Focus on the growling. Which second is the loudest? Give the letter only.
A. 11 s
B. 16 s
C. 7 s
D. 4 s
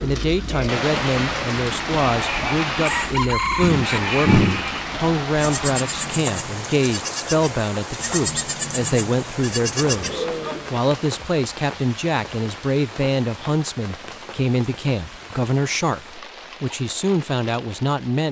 D.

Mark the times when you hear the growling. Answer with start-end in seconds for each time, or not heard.
3.6-4.6, 9.8-10.8.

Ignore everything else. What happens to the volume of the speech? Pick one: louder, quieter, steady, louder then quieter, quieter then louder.
steady.